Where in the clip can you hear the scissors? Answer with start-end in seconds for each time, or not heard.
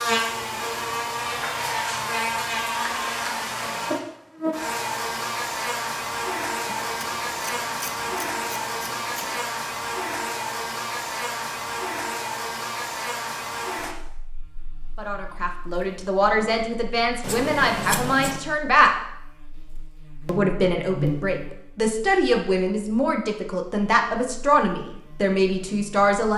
6.7-9.4, 17.2-18.4.